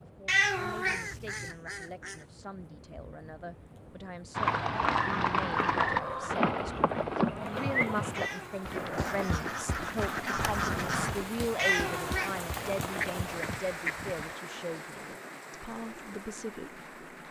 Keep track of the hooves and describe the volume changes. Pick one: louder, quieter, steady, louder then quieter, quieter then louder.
quieter.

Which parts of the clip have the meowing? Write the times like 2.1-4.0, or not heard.
0.2-1.5, 8.2-8.8, 11.6-12.8.